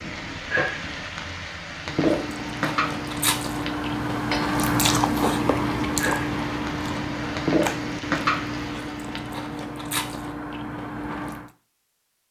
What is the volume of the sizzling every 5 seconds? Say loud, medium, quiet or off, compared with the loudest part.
loud, loud, off.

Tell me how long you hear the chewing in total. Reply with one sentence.
You can hear the chewing for 10 seconds altogether.